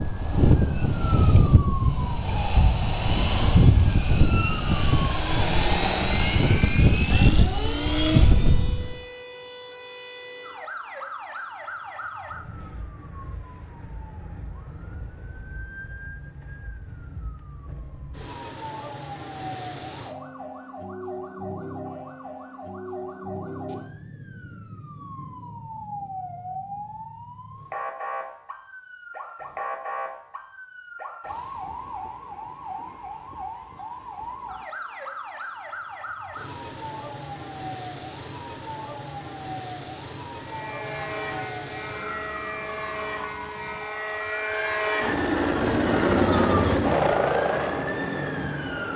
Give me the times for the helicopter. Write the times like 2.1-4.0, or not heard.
0.0-8.9, 40.4-48.9.